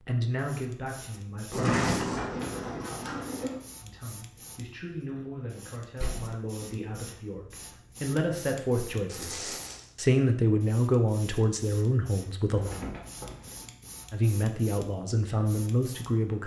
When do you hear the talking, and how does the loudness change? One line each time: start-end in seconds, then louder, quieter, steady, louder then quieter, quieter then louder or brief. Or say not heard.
0.1-1.9 brief
3.8-12.7 louder
14.1-16.4 brief.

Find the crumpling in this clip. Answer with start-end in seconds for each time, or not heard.
1.5-2.2, 9.1-9.9.